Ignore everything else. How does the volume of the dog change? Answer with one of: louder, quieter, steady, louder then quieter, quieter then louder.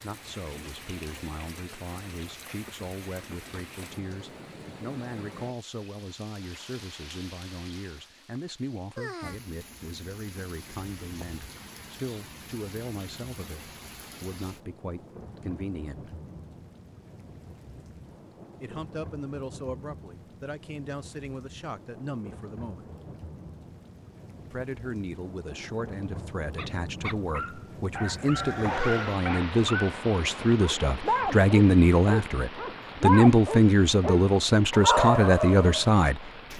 louder.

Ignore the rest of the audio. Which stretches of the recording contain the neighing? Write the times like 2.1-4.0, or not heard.
28.1-29.2.